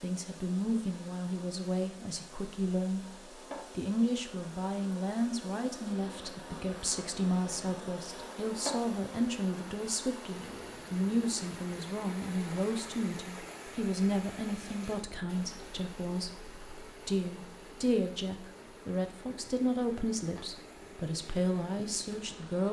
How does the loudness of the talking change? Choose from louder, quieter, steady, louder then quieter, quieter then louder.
steady.